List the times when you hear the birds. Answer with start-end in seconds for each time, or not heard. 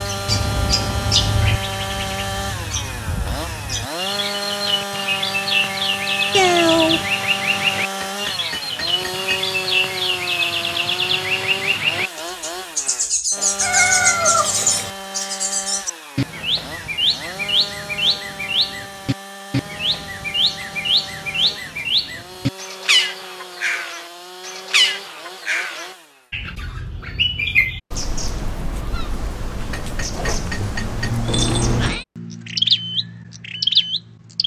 0.0-34.4.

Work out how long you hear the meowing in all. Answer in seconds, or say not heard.
3 s.